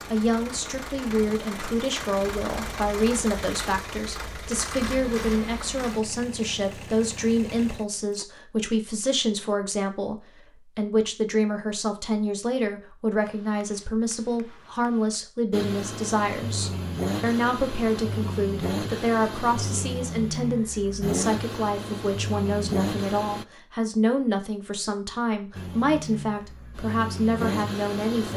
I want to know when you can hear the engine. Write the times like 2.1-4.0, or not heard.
0.0-8.2, 15.5-23.4, 25.5-28.3.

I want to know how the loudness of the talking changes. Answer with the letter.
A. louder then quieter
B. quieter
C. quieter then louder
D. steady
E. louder
D.